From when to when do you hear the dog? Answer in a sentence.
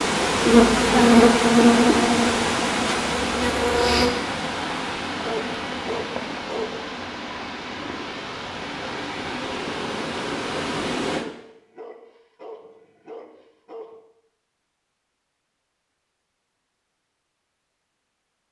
You can hear the dog from 5.2 to 6.8 s and from 11.2 to 14.1 s.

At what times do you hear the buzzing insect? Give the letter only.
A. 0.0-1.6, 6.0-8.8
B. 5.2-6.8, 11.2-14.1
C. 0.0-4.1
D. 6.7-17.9
C.